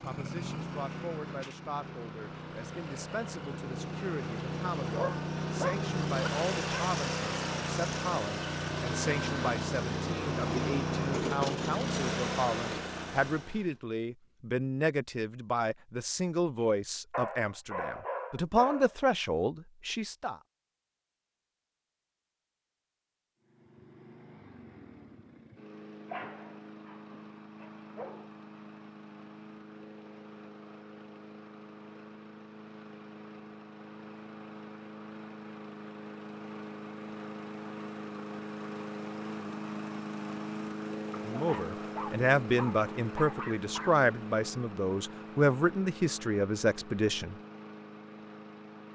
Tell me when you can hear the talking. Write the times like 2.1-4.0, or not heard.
0.0-20.4, 41.2-47.4.